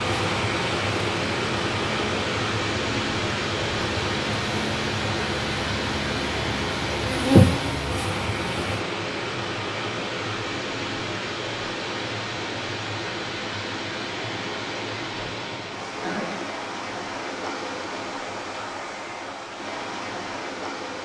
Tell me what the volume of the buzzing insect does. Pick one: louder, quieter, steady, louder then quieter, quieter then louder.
louder.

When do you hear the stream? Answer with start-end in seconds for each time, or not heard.
0.0-21.0.